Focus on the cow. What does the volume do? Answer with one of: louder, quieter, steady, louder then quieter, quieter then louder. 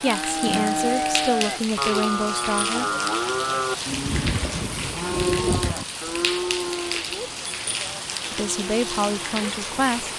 quieter.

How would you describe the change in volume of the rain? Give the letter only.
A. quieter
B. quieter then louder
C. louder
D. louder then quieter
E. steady
E.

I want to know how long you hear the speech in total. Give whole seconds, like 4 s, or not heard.
5 s.